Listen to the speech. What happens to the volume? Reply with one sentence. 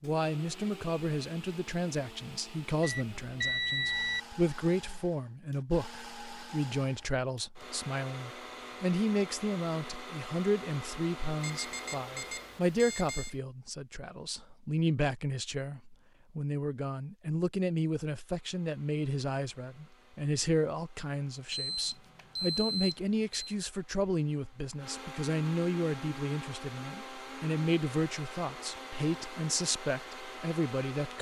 The loudness of the speech stays about the same.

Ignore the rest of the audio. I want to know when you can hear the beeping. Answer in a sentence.
The beeping can be heard from 2.8 to 4.2 s, from 11.4 to 13.3 s and from 21.5 to 23.6 s.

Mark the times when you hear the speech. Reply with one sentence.
You can hear the speech from 0.0 to 31.1 s.